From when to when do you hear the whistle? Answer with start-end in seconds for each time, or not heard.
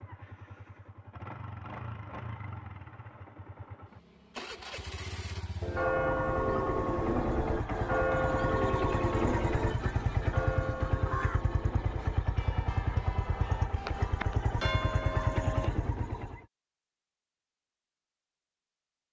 not heard.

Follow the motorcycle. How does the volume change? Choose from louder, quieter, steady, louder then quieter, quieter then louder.
louder.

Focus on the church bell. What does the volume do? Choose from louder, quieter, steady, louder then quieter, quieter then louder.
quieter then louder.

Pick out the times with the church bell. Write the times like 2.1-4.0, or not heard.
5.6-15.7.